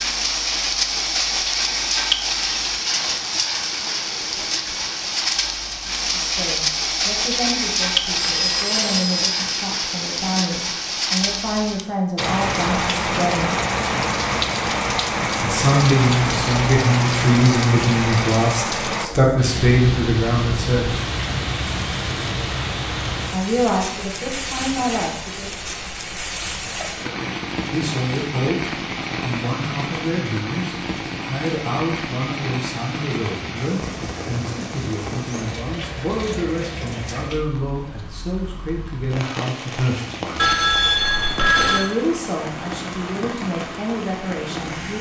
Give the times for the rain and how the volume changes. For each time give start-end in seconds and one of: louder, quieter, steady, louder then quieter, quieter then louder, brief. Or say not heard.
0.0-44.9 quieter.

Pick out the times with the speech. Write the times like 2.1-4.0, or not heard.
5.8-13.5, 15.4-20.9, 23.3-25.5, 26.9-40.5, 41.5-44.9.